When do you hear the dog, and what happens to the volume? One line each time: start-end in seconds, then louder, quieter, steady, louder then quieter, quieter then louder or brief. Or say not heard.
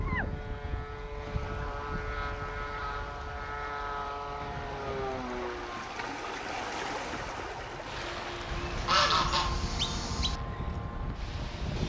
not heard.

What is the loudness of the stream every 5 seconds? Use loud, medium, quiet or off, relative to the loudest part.
medium, loud, medium.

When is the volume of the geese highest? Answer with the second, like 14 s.
9 s.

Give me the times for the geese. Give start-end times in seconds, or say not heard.
8.4-10.4.